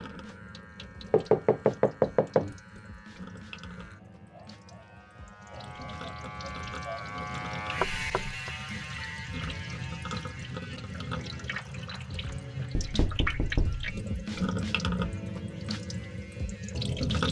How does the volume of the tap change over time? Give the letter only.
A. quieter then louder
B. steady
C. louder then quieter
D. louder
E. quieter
D.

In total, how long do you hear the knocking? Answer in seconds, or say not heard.
3 s.